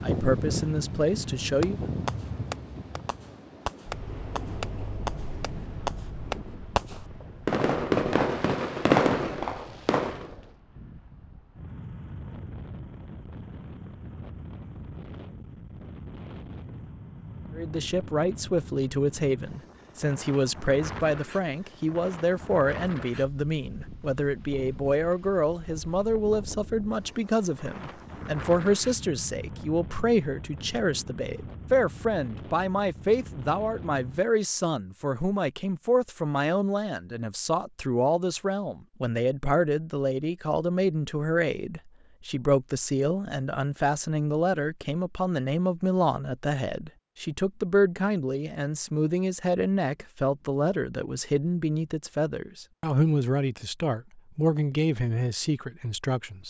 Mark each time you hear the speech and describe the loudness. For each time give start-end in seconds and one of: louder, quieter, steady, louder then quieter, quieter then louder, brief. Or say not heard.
0.0-1.9 brief
17.6-56.4 steady.